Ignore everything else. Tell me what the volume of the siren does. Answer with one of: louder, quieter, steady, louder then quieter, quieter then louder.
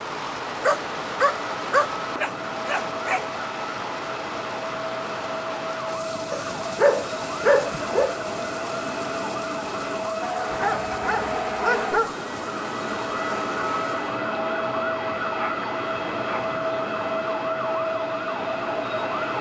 louder.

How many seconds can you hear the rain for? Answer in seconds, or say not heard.
14 s.